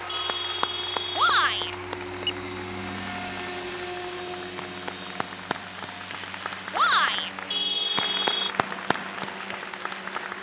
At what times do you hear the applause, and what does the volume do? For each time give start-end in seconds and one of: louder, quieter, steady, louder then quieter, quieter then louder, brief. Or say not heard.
0.0-10.3 quieter then louder.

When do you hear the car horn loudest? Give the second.
8 s.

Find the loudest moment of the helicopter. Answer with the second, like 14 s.
3 s.